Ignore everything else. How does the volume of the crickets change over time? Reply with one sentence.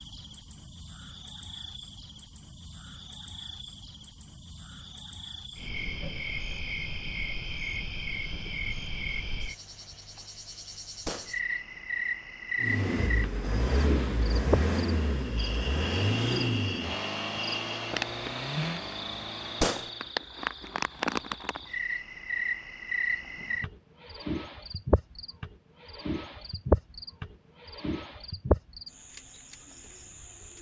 The loudness of the crickets goes up.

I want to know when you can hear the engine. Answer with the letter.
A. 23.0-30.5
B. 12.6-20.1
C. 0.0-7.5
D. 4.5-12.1
B.